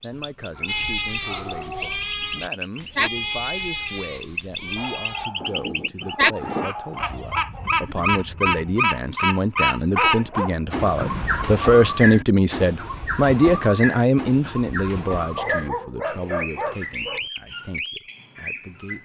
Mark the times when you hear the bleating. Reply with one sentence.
You can hear the bleating from 0.7 to 8.8 s.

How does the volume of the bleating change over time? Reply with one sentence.
The volume of the bleating goes down.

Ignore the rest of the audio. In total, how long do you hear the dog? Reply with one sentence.
You can hear the dog for 8 seconds altogether.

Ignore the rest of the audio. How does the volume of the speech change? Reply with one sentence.
The volume of the speech goes up, then down.